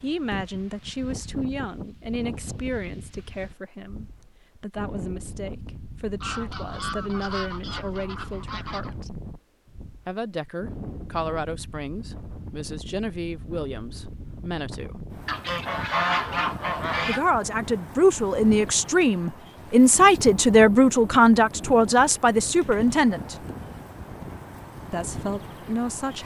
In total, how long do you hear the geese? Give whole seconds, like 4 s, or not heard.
5 s.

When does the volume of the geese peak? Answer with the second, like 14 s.
16 s.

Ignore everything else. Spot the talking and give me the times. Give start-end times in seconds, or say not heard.
0.0-9.2, 10.1-15.0, 17.1-23.4, 24.9-26.2.